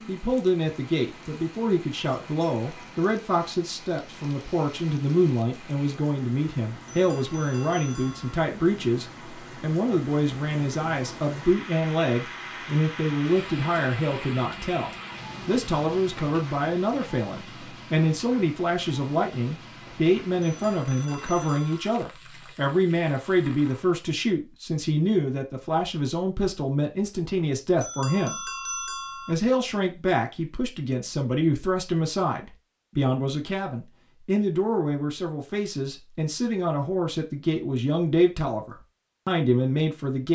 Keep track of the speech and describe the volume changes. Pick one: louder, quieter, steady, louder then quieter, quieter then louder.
steady.